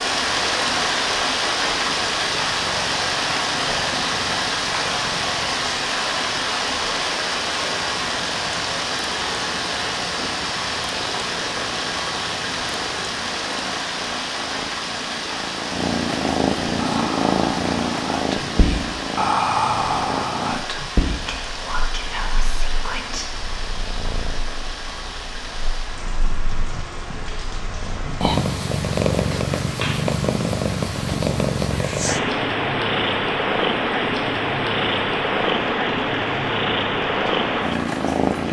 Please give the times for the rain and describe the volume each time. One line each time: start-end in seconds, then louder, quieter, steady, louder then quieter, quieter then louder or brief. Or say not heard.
0.0-38.4 quieter.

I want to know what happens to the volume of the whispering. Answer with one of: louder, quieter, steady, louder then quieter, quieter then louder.
louder then quieter.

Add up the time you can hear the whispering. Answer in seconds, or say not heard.
7 s.